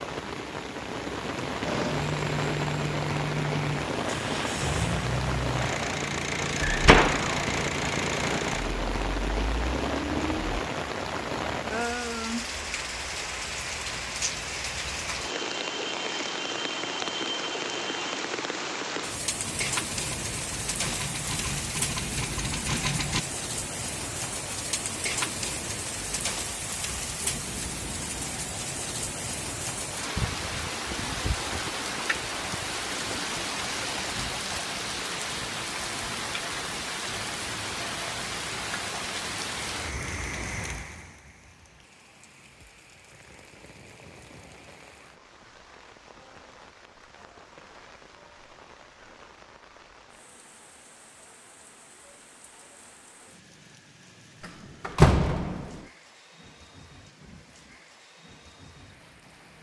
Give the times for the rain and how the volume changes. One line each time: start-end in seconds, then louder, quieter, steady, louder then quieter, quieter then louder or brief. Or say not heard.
0.0-59.5 quieter.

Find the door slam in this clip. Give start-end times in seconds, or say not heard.
6.6-7.3, 54.4-55.8.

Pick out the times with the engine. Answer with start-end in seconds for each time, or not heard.
1.6-10.6, 19.4-23.2.